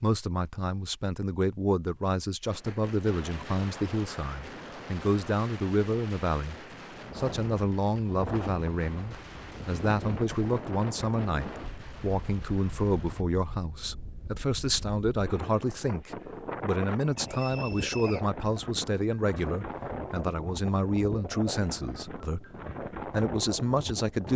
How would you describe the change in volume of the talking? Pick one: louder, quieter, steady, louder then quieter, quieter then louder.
steady.